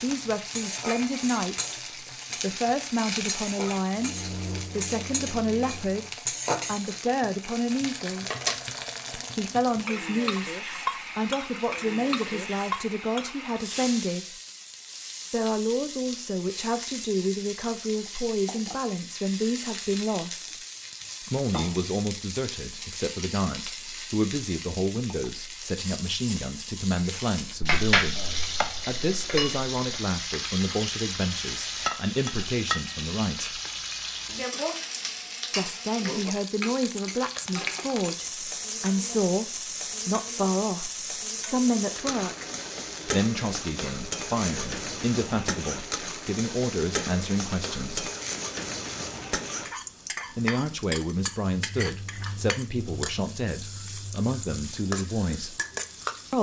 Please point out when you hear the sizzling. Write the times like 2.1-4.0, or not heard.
0.0-56.3.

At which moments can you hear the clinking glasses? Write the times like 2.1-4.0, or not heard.
27.6-30.0.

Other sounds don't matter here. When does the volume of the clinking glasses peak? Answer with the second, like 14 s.
28 s.